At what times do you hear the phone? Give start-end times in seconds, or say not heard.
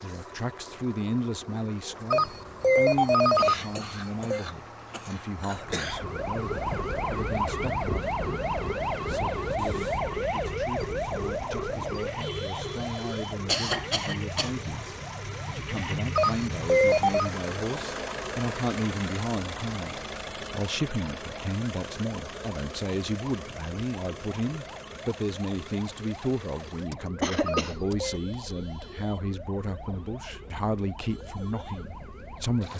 2.1-4.4, 16.1-17.3, 27.4-28.2.